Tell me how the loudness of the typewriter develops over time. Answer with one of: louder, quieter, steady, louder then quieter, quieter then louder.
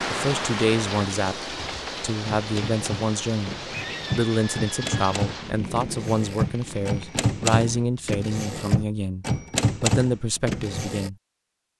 louder.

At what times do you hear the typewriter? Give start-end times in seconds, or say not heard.
1.6-11.1.